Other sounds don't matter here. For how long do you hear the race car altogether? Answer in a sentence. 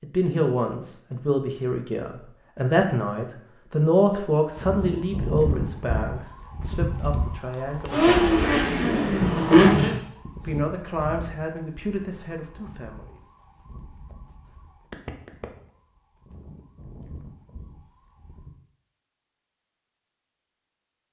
The race car can be heard for 2 seconds in total.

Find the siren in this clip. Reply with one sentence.
The siren can be heard from 4.5 to 18.6 s.